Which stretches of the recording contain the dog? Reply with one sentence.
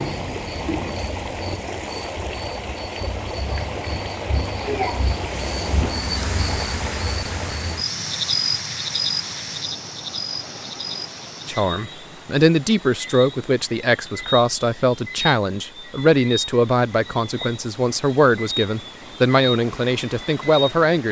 The dog can't be heard in this clip.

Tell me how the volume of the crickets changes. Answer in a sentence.
The loudness of the crickets goes up, then down.